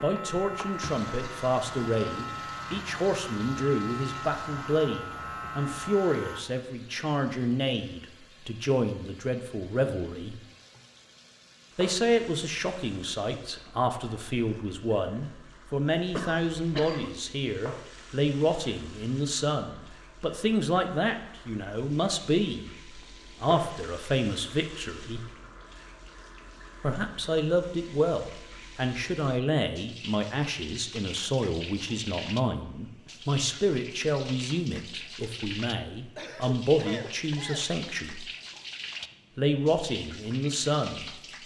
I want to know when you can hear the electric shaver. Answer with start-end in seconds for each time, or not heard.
0.0-6.4.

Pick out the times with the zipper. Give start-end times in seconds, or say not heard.
not heard.